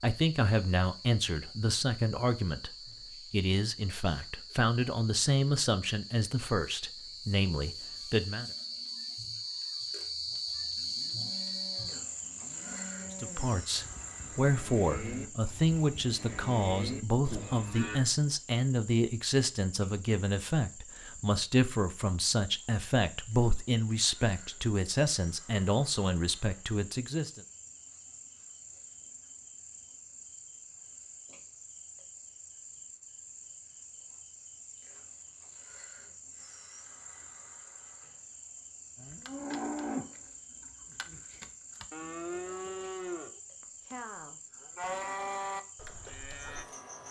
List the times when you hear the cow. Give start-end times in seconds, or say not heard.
10.3-18.0, 39.0-46.6.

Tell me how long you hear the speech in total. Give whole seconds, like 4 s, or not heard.
23 s.